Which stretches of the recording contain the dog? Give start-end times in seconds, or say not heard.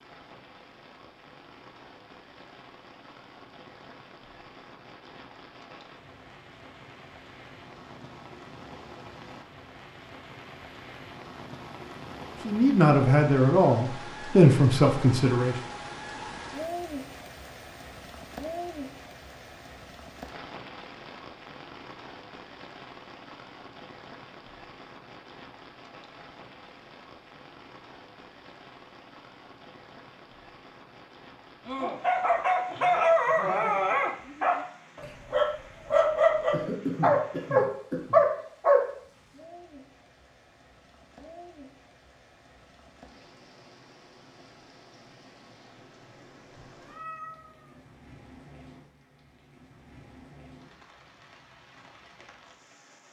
31.6-38.9.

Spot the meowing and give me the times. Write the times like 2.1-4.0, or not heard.
46.8-47.9.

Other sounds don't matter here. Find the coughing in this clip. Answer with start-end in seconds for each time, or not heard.
36.5-38.2.